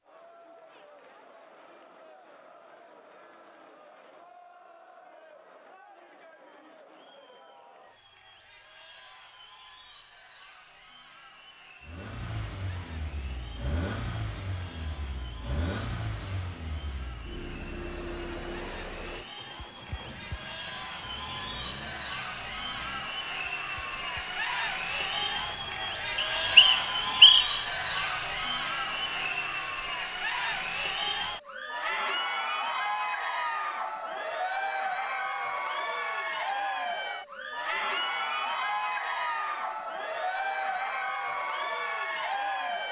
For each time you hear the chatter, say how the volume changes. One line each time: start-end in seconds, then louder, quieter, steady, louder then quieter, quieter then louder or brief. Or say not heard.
0.0-42.8 louder.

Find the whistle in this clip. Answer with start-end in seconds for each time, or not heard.
26.1-27.6.